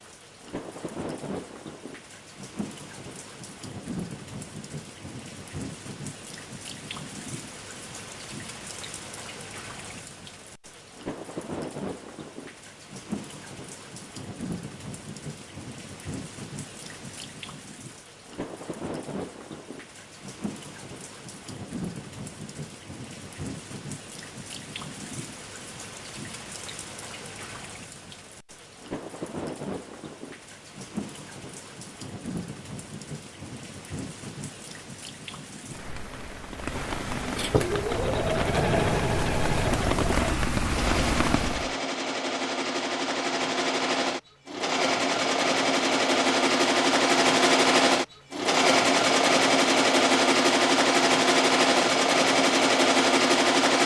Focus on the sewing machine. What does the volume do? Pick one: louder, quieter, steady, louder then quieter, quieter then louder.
louder.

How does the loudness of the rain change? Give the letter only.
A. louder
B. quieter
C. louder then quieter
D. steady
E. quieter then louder
A.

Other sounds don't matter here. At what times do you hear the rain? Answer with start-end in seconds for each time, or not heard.
0.0-41.8.